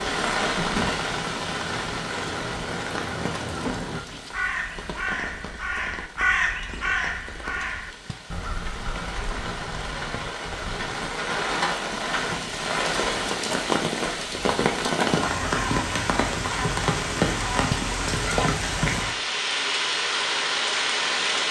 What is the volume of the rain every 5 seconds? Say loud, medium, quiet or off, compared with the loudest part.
medium, quiet, loud, loud, loud.